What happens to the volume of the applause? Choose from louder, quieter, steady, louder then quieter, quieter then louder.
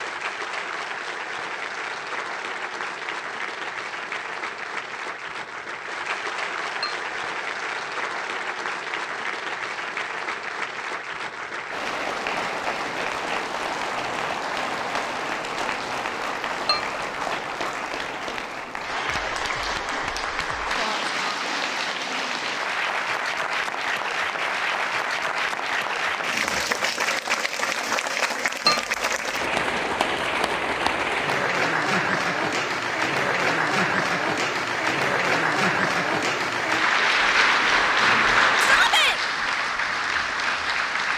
louder.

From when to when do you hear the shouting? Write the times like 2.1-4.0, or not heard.
38.6-39.2.